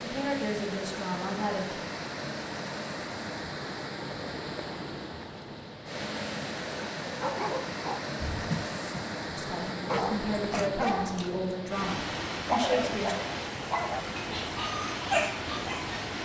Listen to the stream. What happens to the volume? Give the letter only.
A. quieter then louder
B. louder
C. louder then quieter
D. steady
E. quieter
D.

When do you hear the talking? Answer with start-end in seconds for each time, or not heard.
0.0-1.8, 9.3-13.2.